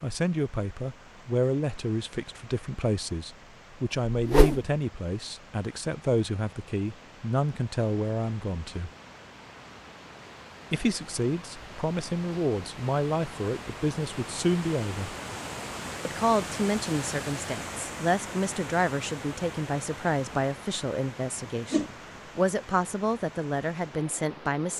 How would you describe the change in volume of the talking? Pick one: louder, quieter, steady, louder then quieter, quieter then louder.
steady.